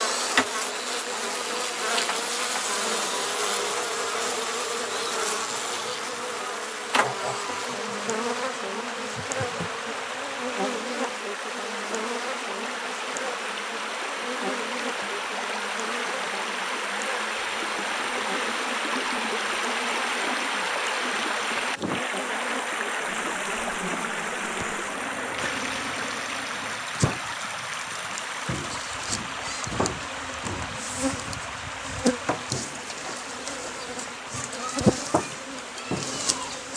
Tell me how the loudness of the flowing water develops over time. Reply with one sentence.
The volume of the flowing water goes up, then down.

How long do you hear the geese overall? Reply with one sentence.
You can hear the geese for 3 seconds altogether.